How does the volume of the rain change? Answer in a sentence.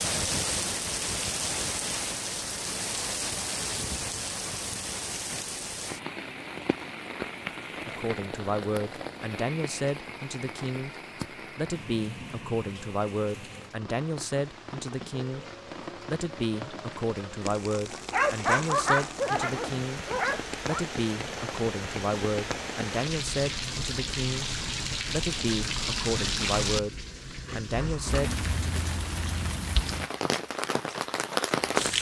The volume of the rain goes down, then up.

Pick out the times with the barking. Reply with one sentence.
You can hear the barking from 18.1 to 20.9 s.